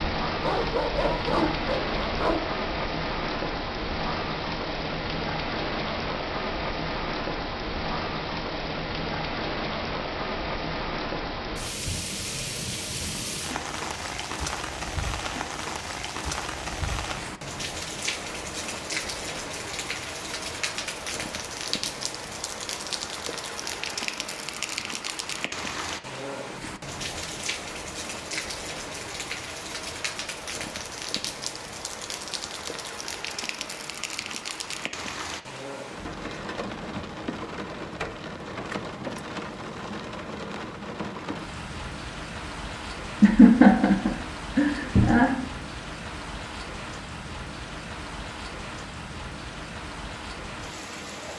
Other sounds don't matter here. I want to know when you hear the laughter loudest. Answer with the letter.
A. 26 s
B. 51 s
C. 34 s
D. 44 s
D.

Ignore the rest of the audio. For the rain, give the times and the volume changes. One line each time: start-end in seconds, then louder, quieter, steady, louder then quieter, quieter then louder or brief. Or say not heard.
0.0-51.3 quieter.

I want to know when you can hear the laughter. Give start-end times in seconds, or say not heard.
43.2-45.5.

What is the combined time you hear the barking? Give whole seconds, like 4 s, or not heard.
2 s.